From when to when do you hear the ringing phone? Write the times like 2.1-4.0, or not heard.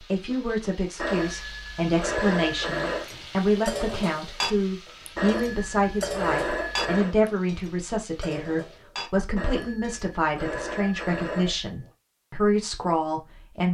0.9-3.0, 5.2-7.2, 9.3-11.9.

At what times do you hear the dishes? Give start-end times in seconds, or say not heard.
3.0-10.2.